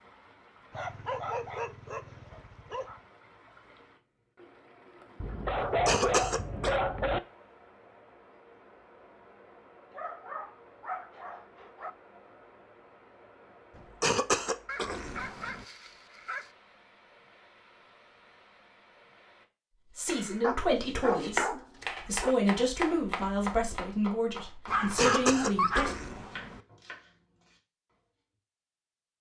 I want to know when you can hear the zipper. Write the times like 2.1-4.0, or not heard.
not heard.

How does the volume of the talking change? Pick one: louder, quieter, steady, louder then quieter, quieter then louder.
steady.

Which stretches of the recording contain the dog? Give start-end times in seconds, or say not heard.
0.7-3.0, 5.2-7.2, 9.9-11.9, 14.7-16.5, 20.4-22.4, 24.6-26.1.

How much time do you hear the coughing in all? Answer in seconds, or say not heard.
5 s.